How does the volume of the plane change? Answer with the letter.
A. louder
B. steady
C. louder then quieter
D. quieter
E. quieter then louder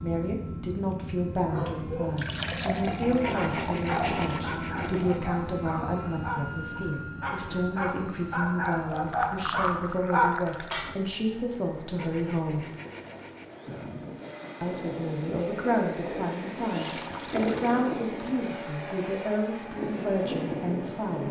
E.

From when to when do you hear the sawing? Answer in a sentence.
The sawing can be heard from 3.0 to 5.3 s and from 11.8 to 13.6 s.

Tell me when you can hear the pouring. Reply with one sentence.
You can hear the pouring from 2.1 to 4.5 s, from 8.6 to 10.8 s and from 16.8 to 17.8 s.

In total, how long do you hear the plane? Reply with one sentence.
The plane can be heard for 21 seconds in total.